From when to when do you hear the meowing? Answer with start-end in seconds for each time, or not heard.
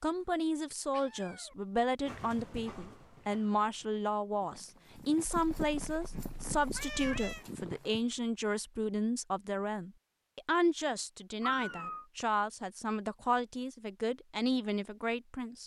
0.9-1.6, 5.2-7.5, 11.4-12.1.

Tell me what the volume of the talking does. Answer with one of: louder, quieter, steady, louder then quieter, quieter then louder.
steady.